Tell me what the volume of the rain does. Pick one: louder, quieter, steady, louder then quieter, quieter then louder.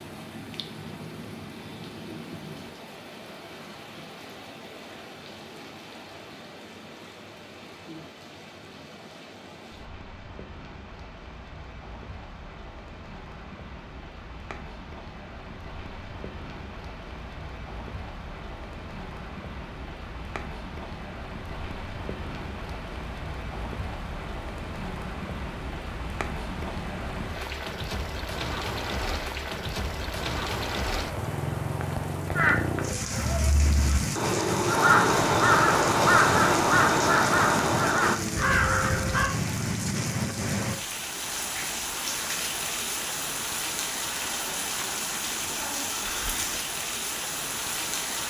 louder.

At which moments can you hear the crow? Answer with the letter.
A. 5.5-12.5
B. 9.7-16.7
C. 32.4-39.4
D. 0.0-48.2
C.